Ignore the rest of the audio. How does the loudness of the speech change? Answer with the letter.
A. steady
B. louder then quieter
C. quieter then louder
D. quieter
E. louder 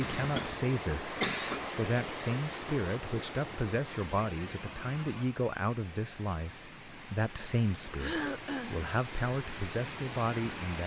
A.